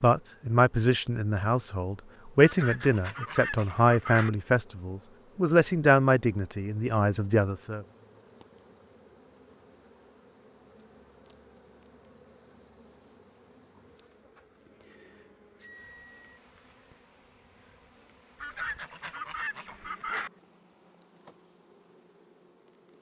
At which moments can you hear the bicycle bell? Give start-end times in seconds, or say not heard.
15.6-16.4.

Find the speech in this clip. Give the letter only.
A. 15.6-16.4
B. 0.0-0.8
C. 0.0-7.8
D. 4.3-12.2
C.